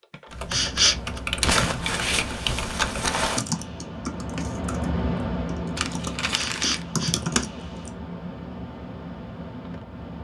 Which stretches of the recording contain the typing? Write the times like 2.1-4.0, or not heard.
0.3-7.9.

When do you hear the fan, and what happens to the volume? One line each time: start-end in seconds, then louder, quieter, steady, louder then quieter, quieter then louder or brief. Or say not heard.
0.0-10.1 louder then quieter.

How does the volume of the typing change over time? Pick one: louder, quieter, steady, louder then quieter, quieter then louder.
quieter then louder.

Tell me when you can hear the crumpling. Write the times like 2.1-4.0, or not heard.
1.4-3.4, 5.8-6.8.